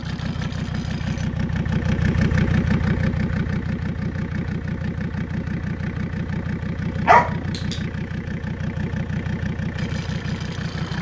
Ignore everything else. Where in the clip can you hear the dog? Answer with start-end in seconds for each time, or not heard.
7.0-7.8.